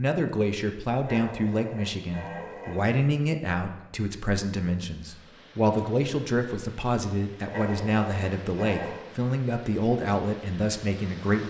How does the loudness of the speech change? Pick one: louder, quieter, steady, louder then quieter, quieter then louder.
steady.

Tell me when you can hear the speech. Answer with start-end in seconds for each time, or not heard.
0.0-11.4.